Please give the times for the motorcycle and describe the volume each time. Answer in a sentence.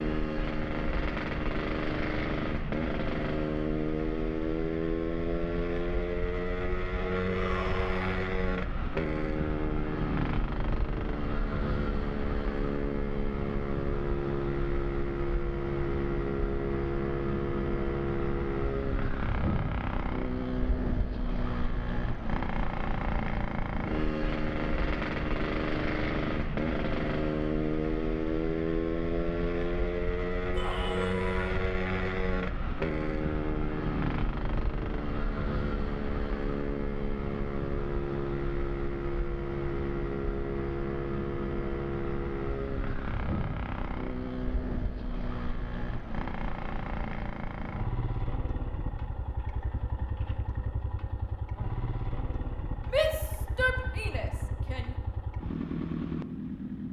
You can hear the motorcycle from 0.0 to 56.8 s, getting quieter.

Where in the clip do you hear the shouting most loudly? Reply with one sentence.
The loudest moment of the shouting is at 53 seconds.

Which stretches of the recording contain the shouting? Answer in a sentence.
The shouting can be heard from 7.2 to 8.2 s, from 30.6 to 31.6 s and from 52.9 to 55.0 s.